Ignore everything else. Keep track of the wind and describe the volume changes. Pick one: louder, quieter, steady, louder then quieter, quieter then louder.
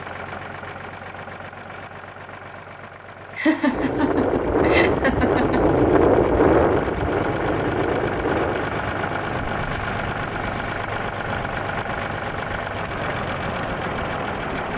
quieter.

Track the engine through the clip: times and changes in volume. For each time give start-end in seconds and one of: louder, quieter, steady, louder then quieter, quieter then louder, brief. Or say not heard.
0.0-14.7 louder.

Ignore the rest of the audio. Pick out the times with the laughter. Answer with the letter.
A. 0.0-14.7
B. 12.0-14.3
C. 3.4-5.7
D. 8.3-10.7
C.